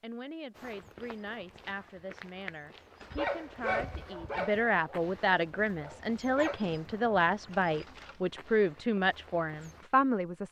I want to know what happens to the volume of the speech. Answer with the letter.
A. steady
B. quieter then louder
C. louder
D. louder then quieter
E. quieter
C.